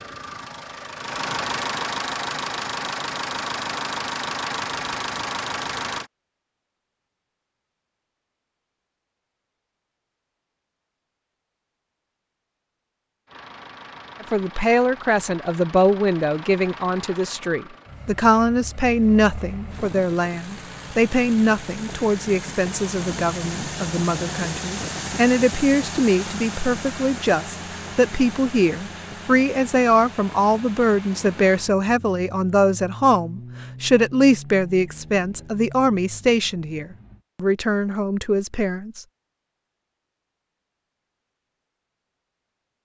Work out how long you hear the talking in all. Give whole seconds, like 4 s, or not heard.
25 s.